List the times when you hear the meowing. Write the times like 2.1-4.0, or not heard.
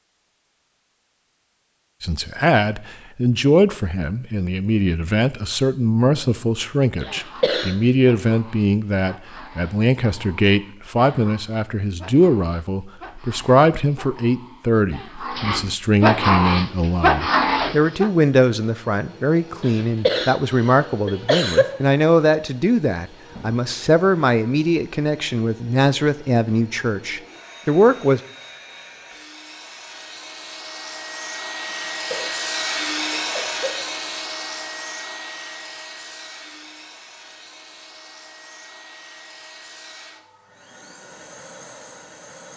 not heard.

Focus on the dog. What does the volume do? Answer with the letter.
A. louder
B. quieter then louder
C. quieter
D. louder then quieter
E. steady
A.